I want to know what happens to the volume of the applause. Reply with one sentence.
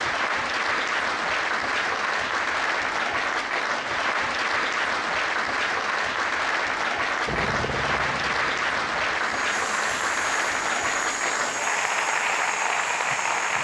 The loudness of the applause stays about the same.